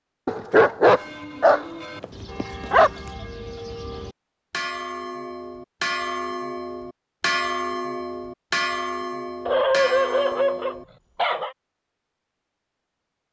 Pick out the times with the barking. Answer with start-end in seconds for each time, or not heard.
0.2-2.9, 9.4-11.6.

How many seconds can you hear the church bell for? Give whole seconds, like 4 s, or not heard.
10 s.